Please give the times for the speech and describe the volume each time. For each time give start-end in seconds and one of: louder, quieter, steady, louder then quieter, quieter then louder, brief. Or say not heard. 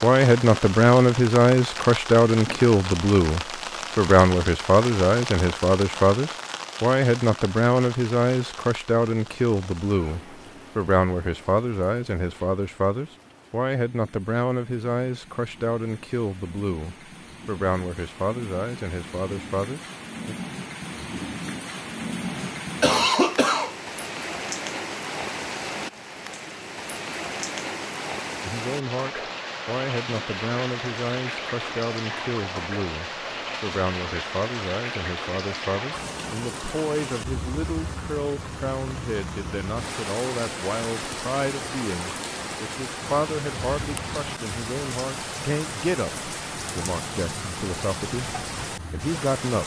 0.0-20.4 quieter
28.4-49.6 steady.